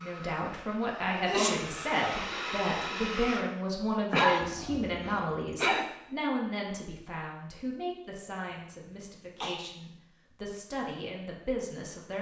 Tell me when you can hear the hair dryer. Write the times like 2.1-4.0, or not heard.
0.0-3.5.